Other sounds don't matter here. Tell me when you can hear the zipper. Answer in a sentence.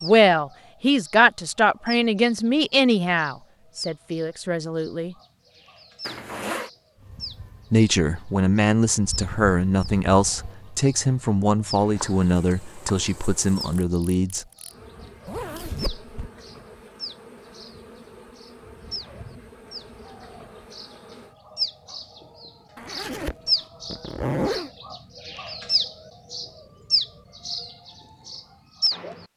You can hear the zipper from 6.0 to 6.7 s, from 15.2 to 16.3 s and from 22.8 to 24.7 s.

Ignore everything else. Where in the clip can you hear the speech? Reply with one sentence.
You can hear the speech from 0.0 to 5.2 s and from 7.7 to 14.4 s.